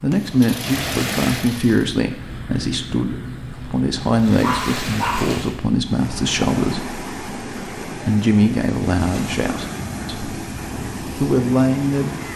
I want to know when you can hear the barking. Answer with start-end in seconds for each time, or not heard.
4.4-5.5.